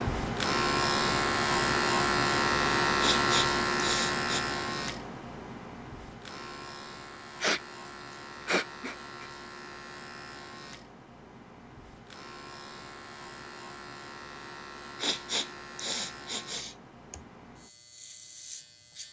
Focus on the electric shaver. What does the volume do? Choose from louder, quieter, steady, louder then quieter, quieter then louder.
quieter.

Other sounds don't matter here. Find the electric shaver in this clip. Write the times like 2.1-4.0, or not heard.
0.0-19.0.